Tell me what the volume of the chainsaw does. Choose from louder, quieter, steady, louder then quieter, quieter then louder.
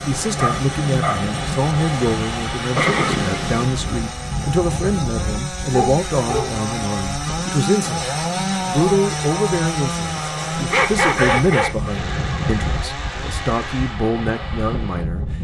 louder then quieter.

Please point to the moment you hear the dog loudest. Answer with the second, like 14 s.
11 s.